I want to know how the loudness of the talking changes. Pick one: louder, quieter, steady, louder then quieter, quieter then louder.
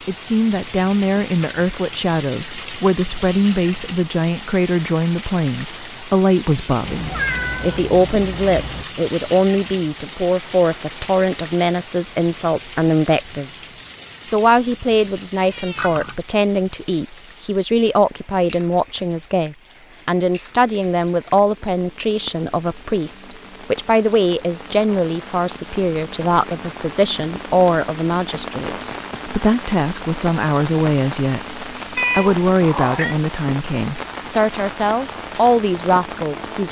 steady.